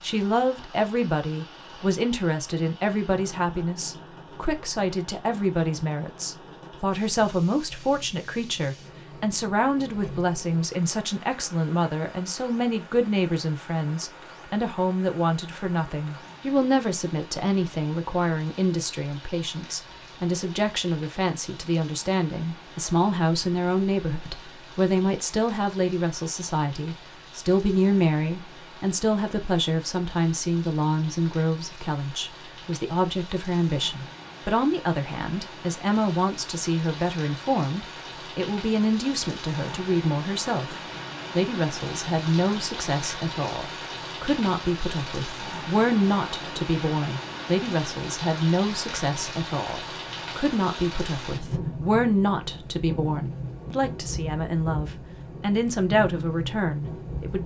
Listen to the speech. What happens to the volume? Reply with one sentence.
The loudness of the speech stays about the same.